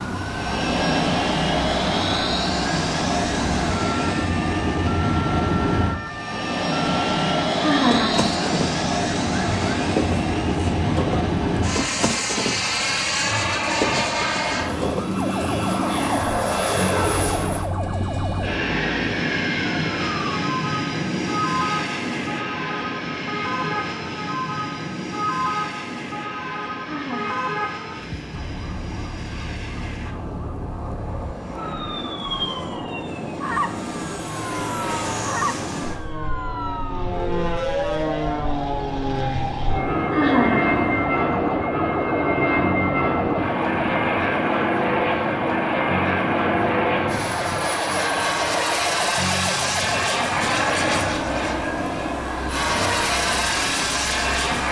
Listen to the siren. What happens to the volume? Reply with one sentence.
The loudness of the siren stays about the same.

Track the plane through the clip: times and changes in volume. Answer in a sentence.
The plane can be heard from 0.0 to 54.6 s, getting quieter then louder.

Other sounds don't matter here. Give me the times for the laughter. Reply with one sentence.
You can hear the laughter from 7.6 to 8.3 s, from 26.9 to 27.5 s and from 40.1 to 41.0 s.